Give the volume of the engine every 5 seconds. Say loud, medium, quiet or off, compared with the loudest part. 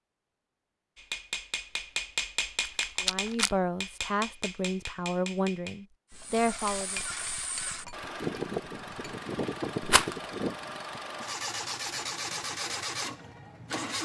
off, loud, loud.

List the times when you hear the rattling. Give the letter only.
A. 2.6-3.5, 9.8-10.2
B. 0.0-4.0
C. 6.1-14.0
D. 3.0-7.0
A.